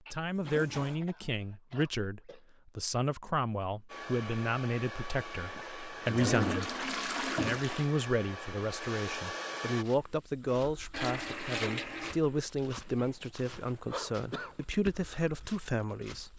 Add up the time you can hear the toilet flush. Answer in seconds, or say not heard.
4 s.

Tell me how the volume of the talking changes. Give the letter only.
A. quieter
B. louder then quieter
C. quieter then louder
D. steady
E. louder
D.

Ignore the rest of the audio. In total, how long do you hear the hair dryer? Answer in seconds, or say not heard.
6 s.